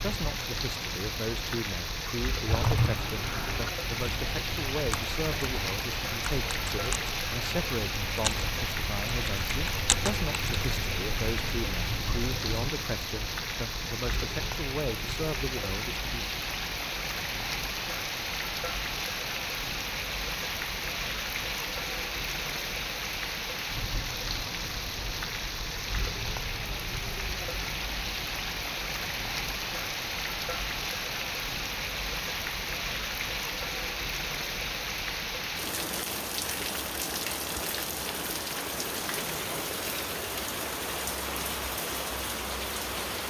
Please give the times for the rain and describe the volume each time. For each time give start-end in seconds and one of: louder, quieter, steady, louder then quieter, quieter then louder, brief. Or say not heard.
0.0-43.2 steady.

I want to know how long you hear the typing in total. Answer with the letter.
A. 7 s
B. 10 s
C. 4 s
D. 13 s
B.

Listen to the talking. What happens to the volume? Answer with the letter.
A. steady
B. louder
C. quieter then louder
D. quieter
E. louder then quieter
A.